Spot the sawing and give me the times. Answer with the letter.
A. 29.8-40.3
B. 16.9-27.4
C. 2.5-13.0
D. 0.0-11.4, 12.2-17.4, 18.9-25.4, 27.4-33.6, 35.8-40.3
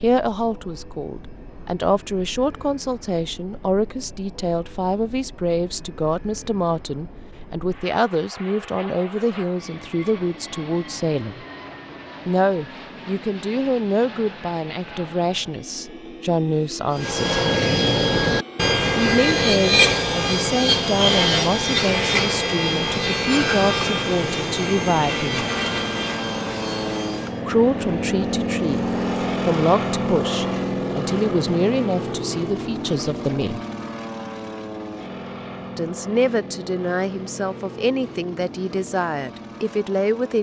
B.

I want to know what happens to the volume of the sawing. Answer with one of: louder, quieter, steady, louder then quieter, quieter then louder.
quieter.